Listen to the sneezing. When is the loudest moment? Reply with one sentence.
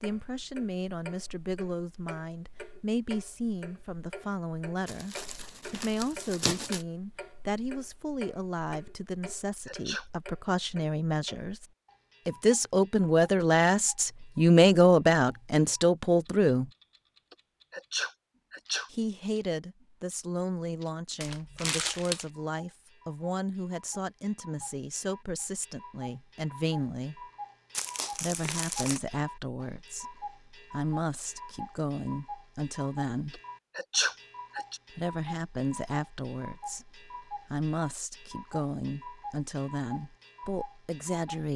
The loudest moment of the sneezing is at 34 seconds.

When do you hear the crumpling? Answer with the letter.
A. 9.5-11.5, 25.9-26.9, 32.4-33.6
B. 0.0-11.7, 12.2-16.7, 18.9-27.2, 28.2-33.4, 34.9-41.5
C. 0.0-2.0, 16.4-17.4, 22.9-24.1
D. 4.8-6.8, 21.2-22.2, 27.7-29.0
D.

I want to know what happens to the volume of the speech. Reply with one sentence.
The loudness of the speech goes up, then down.